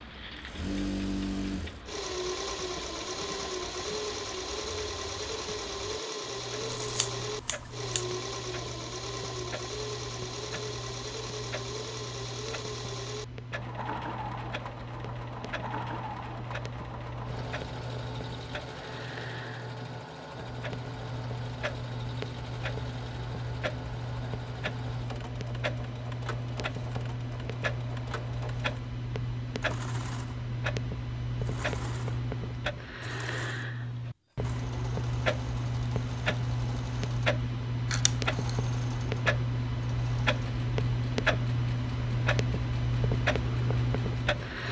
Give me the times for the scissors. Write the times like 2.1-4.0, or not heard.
6.7-8.1, 37.9-38.6.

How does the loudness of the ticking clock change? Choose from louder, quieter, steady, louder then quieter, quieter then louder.
louder.